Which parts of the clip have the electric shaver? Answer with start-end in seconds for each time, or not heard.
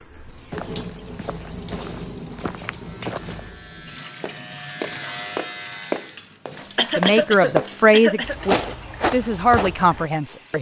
2.8-6.2.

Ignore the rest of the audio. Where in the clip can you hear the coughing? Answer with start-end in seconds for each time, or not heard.
6.2-8.4.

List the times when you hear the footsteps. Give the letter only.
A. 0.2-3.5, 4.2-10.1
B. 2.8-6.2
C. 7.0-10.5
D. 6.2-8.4
A.